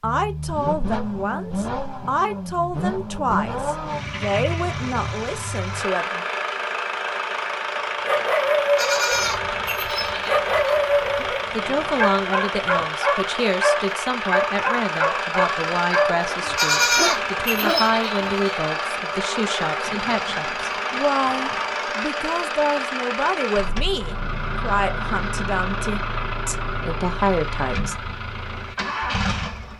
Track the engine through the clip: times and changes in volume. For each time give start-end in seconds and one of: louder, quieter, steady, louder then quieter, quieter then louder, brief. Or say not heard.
0.0-29.7 steady.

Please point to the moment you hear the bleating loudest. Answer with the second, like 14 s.
17 s.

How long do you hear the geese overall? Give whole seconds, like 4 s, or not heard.
not heard.